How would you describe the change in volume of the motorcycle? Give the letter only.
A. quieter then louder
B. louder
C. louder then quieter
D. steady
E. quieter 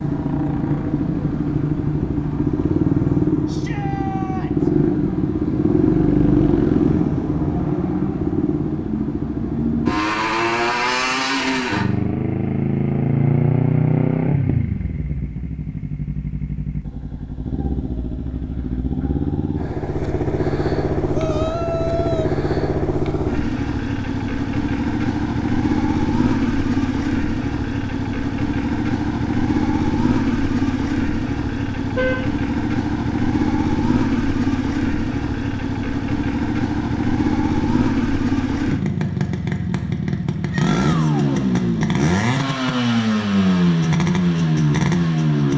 D.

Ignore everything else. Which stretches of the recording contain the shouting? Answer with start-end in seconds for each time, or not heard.
3.5-4.7, 21.1-22.3, 40.5-41.5.